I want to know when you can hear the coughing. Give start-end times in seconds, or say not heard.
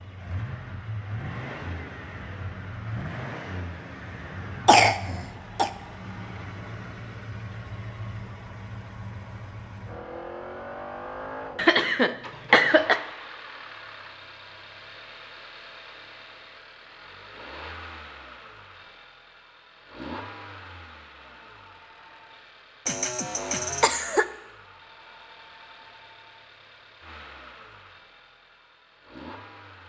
4.7-5.7, 11.6-13.0, 22.9-24.2.